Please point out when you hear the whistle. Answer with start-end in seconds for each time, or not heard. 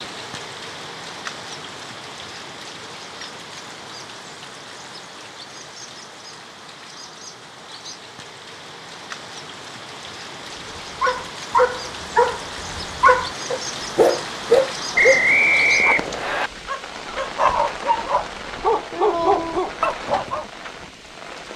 14.9-16.5.